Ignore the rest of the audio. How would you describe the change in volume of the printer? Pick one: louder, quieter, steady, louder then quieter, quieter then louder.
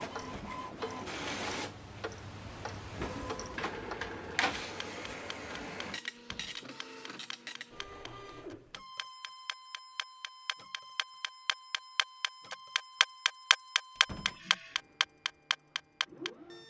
quieter.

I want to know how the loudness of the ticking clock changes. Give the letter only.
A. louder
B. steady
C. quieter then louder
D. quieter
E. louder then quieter
C.